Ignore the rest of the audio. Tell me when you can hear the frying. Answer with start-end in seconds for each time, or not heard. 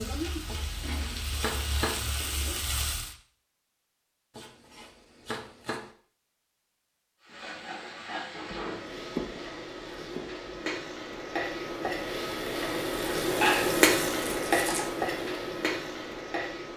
0.0-3.1, 7.2-16.7.